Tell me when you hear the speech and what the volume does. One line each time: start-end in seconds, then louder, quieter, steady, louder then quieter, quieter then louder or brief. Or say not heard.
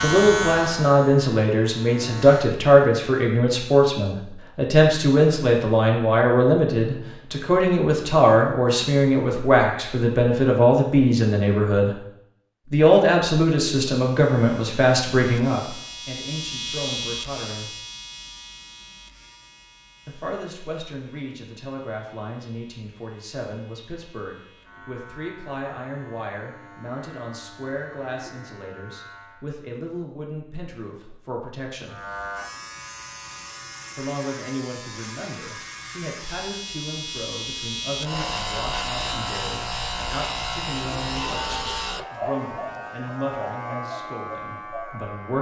0.0-11.9 steady
12.7-17.7 quieter
20.1-32.0 steady
34.0-45.3 steady.